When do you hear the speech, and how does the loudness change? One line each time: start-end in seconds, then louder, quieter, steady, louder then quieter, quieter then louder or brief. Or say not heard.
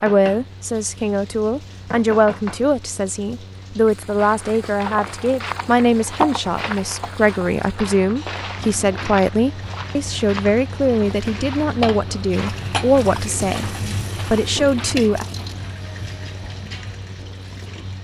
0.0-15.2 steady.